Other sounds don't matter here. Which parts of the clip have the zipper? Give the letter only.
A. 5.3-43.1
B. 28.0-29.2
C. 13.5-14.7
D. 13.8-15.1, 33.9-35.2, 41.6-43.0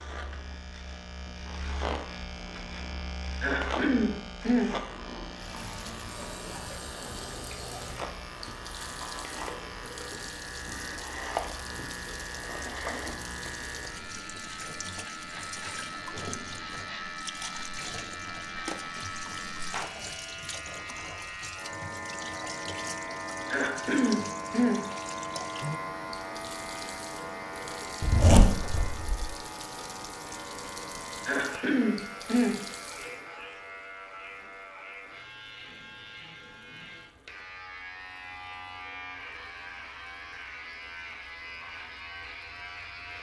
B.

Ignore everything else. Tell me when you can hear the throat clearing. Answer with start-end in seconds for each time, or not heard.
3.4-4.8, 23.5-24.9, 31.2-32.6.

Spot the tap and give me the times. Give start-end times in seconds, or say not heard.
5.3-43.1.